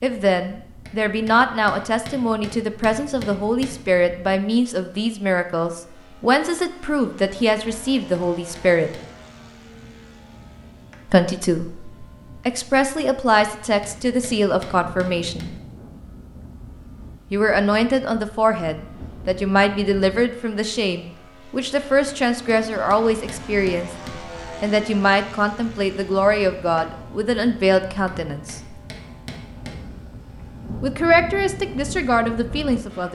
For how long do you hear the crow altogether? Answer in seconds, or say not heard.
not heard.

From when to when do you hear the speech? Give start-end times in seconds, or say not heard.
0.0-8.9, 11.1-15.5, 17.3-23.9, 24.6-28.8, 30.8-33.0.